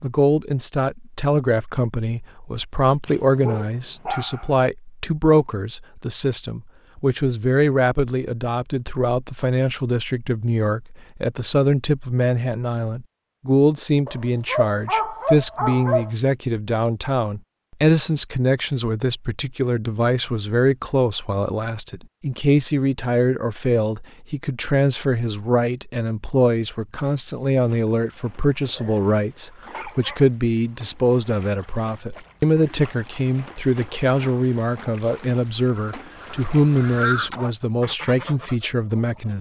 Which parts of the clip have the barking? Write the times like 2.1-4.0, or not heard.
3.0-4.5, 14.1-16.1, 28.6-30.3.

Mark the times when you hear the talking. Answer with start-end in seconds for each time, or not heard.
0.0-39.3.